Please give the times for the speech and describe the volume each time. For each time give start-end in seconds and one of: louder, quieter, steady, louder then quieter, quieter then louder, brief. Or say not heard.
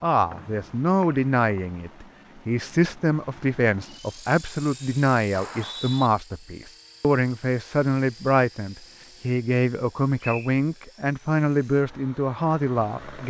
0.0-13.2 steady.